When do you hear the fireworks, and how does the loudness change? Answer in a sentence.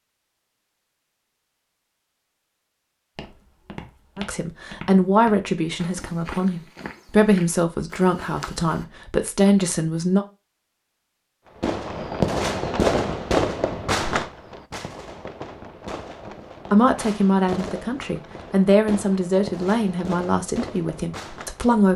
You can hear the fireworks from 11.6 to 21.8 s, getting quieter.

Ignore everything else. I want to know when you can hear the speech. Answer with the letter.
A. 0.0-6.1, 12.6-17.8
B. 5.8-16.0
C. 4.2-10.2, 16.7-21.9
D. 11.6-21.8
C.